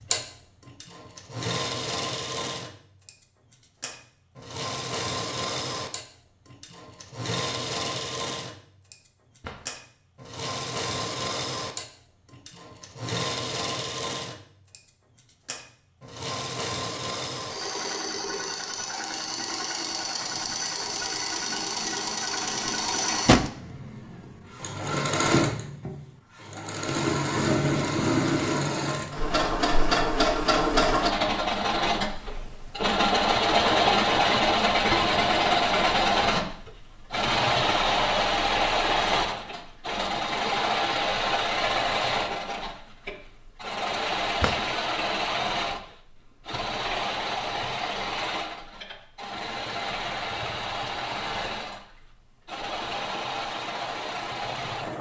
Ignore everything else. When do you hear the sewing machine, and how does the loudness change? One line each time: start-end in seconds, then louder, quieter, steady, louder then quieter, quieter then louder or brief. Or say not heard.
0.0-54.9 louder then quieter.